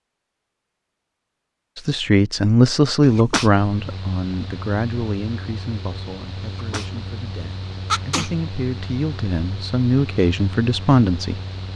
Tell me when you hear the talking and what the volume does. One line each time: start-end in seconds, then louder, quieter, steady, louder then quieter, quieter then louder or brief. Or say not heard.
1.8-11.7 quieter then louder.